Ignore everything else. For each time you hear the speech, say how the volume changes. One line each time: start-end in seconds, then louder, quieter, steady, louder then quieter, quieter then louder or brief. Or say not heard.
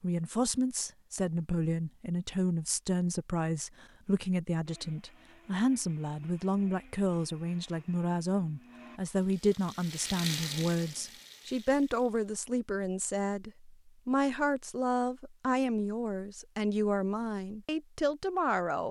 0.0-18.8 steady.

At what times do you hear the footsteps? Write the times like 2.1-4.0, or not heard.
not heard.